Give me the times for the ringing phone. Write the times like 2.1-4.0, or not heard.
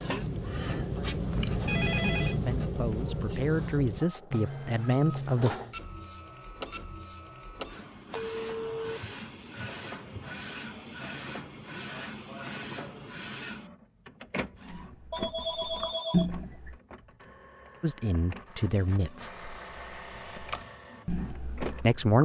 1.3-2.4, 8.1-9.0, 15.1-16.7.